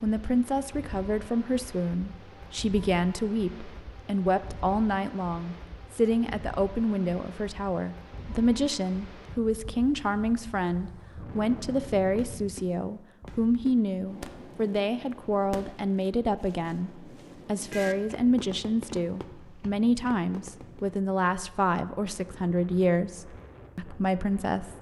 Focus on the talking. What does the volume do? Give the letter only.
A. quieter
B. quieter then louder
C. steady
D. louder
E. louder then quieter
C.